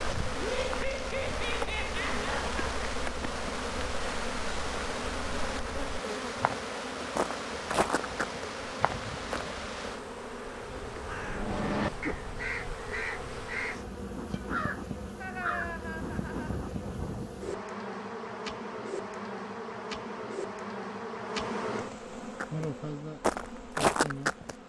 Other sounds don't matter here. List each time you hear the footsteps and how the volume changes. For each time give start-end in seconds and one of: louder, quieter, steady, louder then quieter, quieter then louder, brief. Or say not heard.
0.0-9.6 louder
22.2-24.6 brief.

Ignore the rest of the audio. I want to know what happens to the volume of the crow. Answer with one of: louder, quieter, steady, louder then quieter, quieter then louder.
quieter.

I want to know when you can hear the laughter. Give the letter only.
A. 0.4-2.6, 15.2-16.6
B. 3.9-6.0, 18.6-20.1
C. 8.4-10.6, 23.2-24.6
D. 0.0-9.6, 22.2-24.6
A.